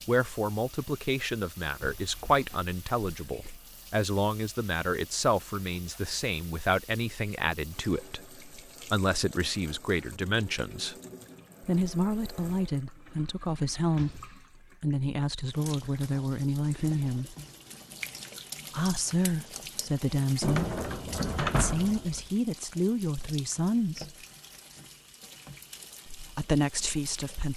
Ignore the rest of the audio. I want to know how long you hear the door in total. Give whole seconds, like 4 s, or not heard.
4 s.